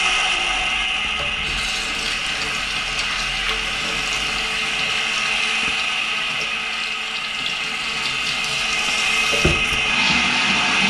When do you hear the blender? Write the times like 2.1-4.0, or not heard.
0.0-10.8.